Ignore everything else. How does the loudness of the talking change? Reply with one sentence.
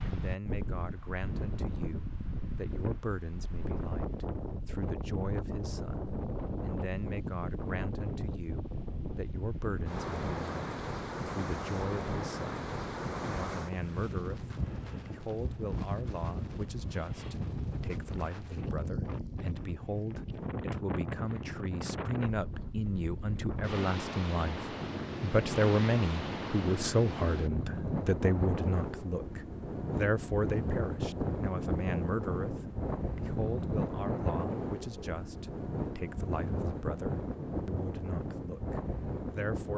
The volume of the talking goes up, then down.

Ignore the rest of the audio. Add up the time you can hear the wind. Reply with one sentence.
The wind can be heard for 40 seconds in total.